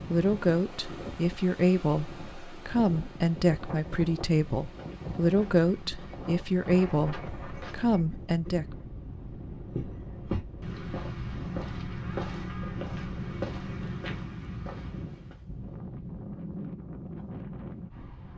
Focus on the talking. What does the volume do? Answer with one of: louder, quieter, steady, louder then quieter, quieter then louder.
steady.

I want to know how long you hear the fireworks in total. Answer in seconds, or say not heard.
not heard.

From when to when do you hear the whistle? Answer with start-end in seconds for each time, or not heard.
not heard.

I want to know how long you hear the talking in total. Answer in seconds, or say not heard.
9 s.